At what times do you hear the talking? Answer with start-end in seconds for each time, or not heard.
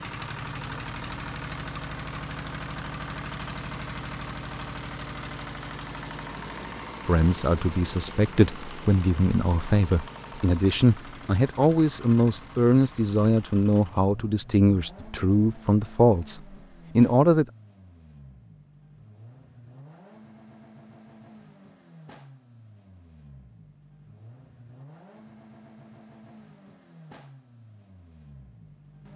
7.0-17.4.